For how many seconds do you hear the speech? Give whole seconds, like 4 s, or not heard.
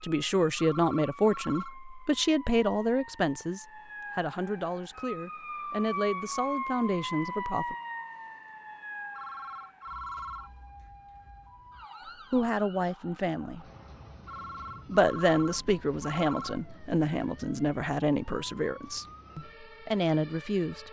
15 s.